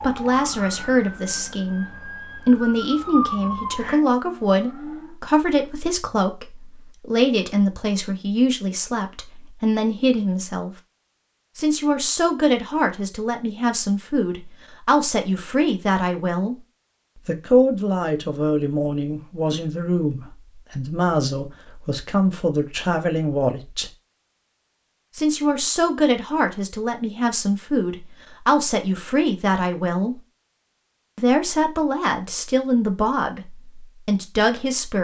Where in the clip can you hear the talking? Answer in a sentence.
The talking can be heard from 0.0 to 1.9 s, from 2.5 to 10.7 s, from 11.6 to 16.6 s, from 17.2 to 23.9 s, from 25.1 to 30.1 s and from 31.1 to 34.9 s.